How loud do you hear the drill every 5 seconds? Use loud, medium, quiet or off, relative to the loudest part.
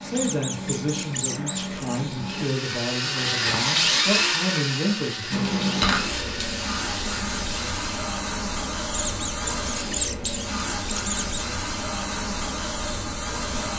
loud, medium, off.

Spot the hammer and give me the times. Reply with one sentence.
The hammer can't be heard in this clip.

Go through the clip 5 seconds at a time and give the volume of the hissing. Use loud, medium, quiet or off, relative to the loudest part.
medium, loud, loud.